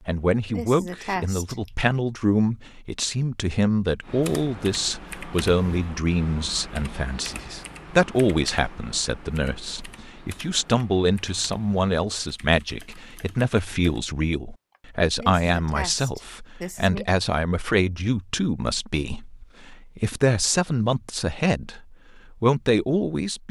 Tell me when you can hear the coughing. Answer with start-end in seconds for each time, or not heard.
0.5-1.7, 15.2-17.1.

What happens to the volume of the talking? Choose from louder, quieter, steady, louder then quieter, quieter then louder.
steady.